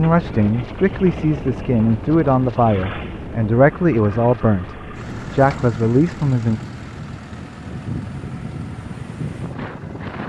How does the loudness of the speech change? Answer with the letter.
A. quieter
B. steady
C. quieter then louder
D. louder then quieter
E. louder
B.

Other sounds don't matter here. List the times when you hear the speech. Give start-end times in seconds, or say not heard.
0.0-6.6.